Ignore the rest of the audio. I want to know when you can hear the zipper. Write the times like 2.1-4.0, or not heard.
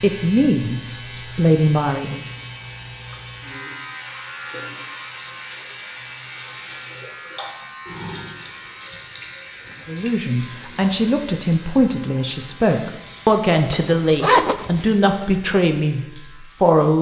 13.7-14.8.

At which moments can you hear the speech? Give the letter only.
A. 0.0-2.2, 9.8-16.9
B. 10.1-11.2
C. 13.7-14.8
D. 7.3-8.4
A.